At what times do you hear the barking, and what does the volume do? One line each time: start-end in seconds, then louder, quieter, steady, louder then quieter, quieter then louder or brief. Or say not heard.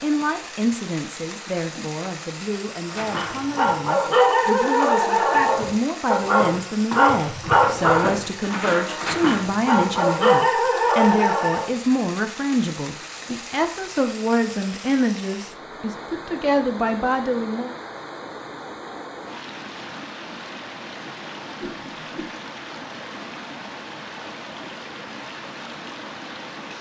2.9-11.8 quieter then louder.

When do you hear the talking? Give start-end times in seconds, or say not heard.
0.0-17.8.